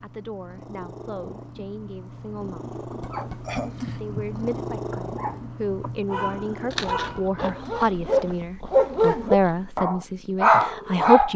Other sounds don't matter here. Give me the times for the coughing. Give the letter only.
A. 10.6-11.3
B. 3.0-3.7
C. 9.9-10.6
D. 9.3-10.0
B.